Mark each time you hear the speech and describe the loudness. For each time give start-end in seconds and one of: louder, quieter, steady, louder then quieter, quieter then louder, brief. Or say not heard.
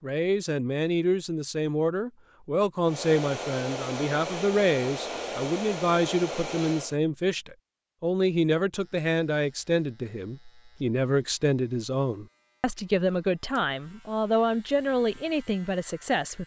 0.0-16.4 steady.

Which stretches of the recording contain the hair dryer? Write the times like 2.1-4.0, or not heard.
2.8-7.0.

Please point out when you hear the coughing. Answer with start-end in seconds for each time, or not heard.
not heard.